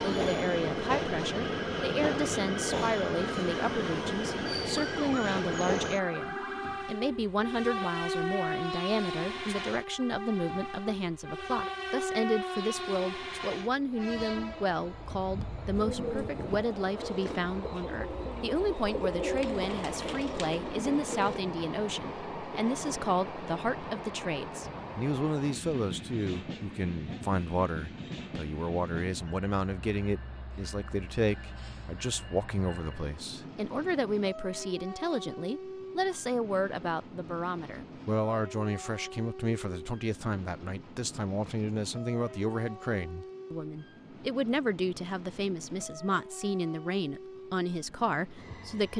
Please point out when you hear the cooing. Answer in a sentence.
The cooing can be heard from 15.8 to 21.4 s.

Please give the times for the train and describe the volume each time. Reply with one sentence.
You can hear the train from 0.0 to 48.9 s, getting quieter.